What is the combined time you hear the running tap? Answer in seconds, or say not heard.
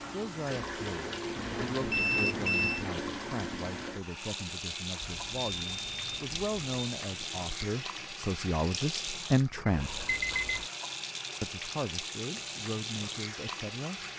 14 s.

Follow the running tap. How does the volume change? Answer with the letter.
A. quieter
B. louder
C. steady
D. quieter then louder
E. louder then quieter
C.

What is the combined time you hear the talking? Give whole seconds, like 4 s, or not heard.
13 s.